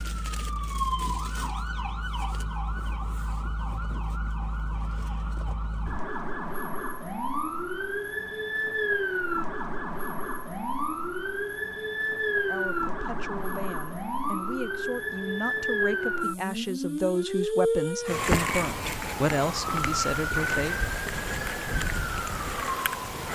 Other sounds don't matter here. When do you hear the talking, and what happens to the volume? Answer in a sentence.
You can hear the talking from 12.4 to 20.8 s, getting louder.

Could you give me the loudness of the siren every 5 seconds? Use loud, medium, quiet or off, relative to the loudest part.
medium, loud, loud, loud, loud.